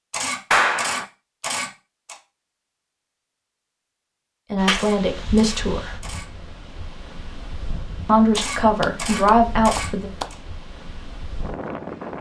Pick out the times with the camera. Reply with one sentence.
The camera can be heard from 0.1 to 2.1 s, from 4.7 to 6.2 s and from 8.3 to 10.3 s.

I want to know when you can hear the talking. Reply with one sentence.
You can hear the talking from 4.5 to 5.9 s and from 8.1 to 10.1 s.